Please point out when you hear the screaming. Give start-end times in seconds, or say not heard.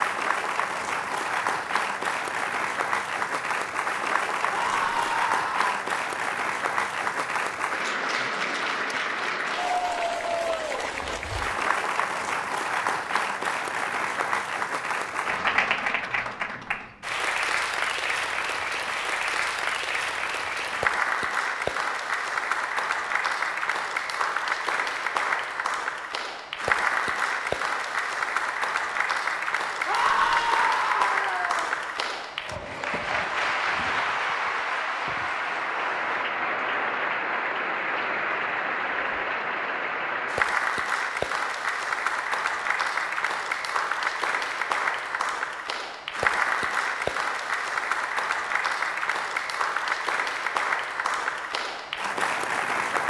4.5-5.8, 29.9-31.6.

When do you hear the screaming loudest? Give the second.
30 s.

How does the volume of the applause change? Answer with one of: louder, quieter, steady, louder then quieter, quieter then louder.
steady.